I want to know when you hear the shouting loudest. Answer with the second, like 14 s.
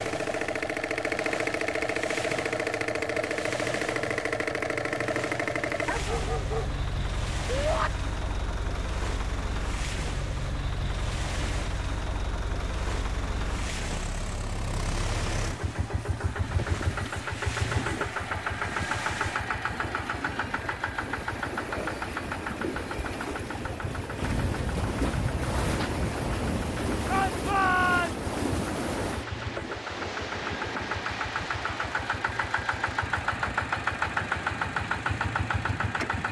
28 s.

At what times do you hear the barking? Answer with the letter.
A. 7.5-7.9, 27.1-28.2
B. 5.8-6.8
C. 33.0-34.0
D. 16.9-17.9
B.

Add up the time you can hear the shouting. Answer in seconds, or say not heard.
2 s.